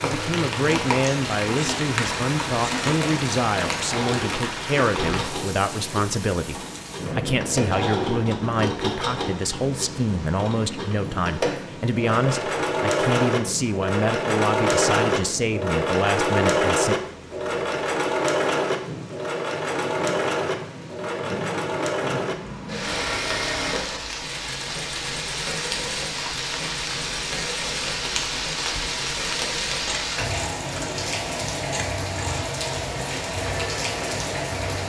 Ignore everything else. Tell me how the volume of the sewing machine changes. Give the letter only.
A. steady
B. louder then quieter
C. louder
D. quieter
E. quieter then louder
B.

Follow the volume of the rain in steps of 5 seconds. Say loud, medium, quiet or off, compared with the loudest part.
loud, medium, medium, medium, medium, loud, loud.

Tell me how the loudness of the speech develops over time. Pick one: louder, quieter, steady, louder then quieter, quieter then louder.
steady.